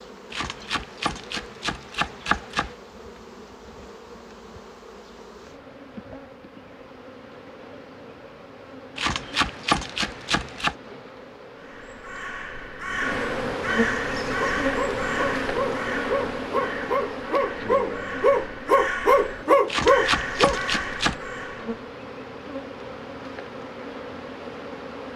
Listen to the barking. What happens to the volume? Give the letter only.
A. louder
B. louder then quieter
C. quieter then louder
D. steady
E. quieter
A.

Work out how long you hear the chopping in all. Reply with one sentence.
You can hear the chopping for 6 seconds altogether.